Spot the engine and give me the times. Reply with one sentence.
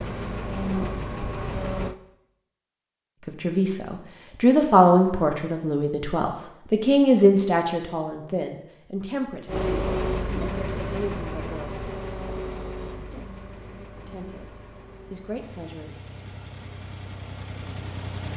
The engine can be heard from 0.0 to 1.9 s and from 9.4 to 18.3 s.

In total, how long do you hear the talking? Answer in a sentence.
The talking can be heard for 10 seconds in total.